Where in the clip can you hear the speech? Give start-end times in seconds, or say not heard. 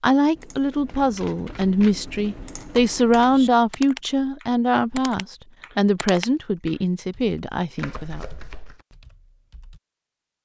0.0-8.2.